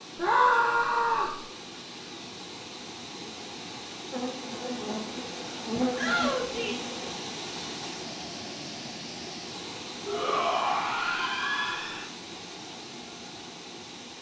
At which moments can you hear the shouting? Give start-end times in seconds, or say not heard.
0.1-1.4, 6.0-6.9, 10.1-12.1.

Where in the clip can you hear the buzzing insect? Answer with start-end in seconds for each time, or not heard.
4.1-7.2.